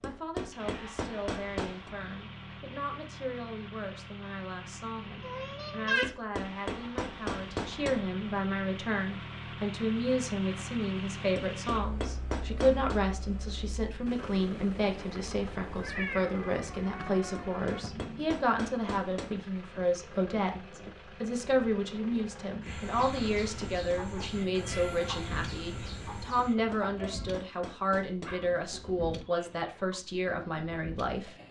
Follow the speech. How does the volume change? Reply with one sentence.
The volume of the speech goes up.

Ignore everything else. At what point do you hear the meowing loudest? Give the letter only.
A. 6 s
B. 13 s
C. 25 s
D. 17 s
A.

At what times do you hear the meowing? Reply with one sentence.
The meowing can be heard from 5.2 to 6.1 s, from 15.8 to 17.8 s and from 24.3 to 26.3 s.